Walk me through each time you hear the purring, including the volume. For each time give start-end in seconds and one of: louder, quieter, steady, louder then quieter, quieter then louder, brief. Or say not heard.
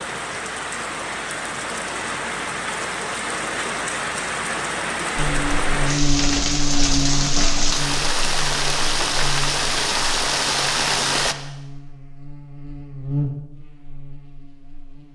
not heard.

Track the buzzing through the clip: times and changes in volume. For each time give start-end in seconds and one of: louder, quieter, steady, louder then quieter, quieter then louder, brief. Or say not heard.
5.2-15.1 quieter then louder.